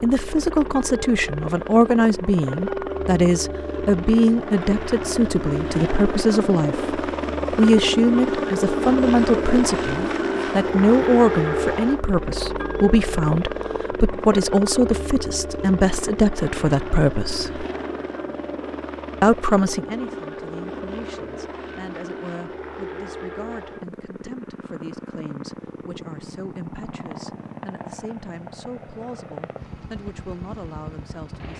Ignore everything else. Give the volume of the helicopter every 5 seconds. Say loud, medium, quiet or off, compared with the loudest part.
medium, loud, loud, medium, medium, quiet, quiet.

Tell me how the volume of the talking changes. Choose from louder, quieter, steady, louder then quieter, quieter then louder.
quieter.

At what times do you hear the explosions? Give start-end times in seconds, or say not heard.
not heard.